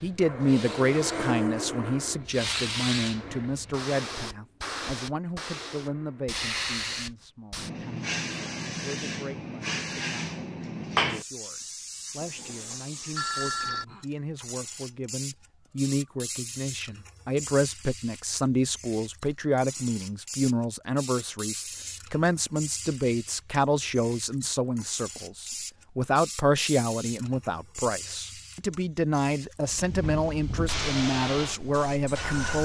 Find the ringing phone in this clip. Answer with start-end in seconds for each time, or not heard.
12.2-13.8.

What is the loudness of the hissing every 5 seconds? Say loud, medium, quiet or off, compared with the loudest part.
loud, loud, loud, medium, medium, medium, loud.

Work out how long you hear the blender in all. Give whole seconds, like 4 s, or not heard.
6 s.